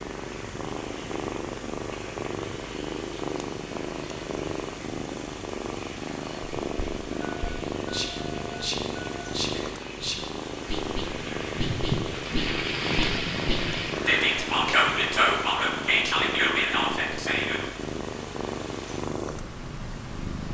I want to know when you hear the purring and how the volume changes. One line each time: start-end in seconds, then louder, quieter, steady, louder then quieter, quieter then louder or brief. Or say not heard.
0.0-20.4 steady.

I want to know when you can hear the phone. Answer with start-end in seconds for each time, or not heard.
7.2-9.2.